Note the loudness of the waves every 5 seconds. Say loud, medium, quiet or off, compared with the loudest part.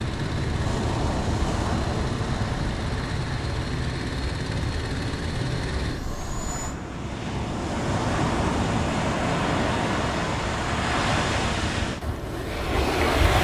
medium, loud, loud.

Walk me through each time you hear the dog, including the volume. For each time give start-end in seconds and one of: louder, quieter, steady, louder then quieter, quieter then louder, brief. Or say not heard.
not heard.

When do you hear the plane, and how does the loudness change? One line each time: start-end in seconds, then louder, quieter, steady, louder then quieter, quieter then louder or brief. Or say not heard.
0.0-6.8 steady.